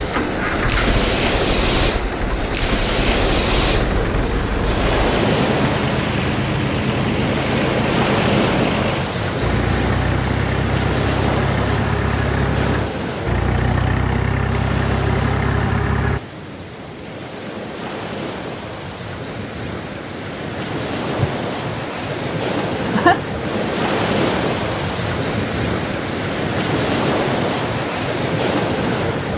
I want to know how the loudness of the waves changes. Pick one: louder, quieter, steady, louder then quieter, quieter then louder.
quieter then louder.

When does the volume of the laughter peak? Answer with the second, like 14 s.
23 s.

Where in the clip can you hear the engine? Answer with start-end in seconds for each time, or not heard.
0.0-16.2.